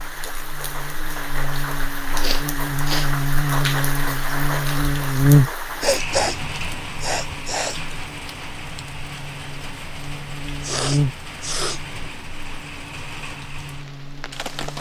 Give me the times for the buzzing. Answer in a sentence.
You can hear the buzzing from 0.0 to 14.7 s.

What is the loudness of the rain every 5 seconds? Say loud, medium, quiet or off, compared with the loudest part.
loud, loud, medium.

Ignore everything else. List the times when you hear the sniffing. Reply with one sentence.
The sniffing can be heard from 2.2 to 3.1 s, from 5.8 to 6.3 s, from 7.0 to 7.8 s and from 10.6 to 11.8 s.